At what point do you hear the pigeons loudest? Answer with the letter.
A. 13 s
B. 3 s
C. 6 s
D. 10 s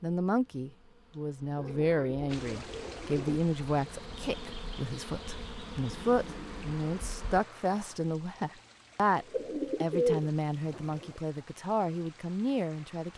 D.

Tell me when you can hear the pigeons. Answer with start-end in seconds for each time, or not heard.
1.6-3.4, 9.2-11.2.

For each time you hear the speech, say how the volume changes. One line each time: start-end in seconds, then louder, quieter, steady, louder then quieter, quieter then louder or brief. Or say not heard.
0.0-13.1 steady.